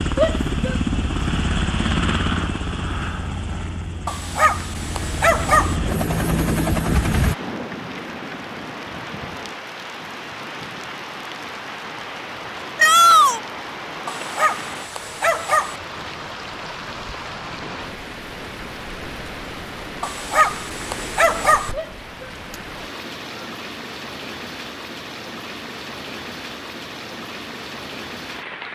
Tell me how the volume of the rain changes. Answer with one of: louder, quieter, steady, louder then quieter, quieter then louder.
steady.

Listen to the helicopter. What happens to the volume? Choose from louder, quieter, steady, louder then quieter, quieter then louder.
quieter then louder.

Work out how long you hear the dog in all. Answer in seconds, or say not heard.
5 s.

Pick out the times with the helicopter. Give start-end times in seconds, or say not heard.
0.0-7.3.